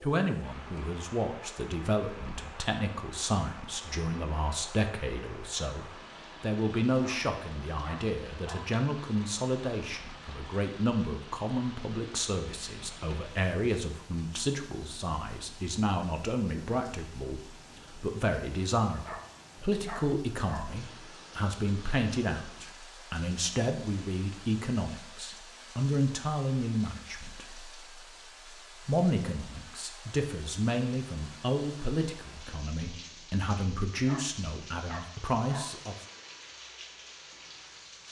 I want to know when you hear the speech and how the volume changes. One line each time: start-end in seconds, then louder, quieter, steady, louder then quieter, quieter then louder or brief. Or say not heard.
0.0-36.0 steady.